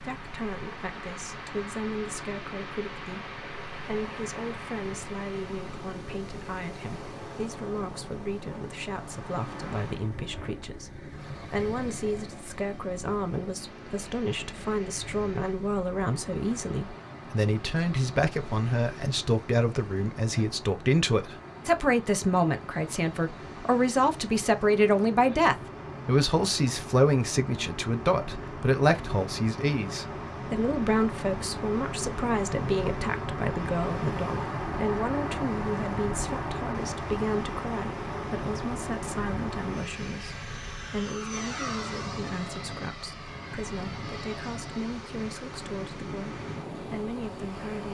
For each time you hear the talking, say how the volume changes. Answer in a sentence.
You can hear the talking from 0.0 to 47.8 s, getting louder then quieter.